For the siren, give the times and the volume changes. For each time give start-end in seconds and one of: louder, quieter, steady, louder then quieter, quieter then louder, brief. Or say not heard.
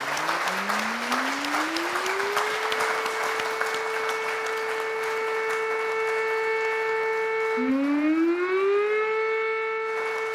0.0-10.3 louder.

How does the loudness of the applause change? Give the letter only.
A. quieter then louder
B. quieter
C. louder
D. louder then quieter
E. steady
B.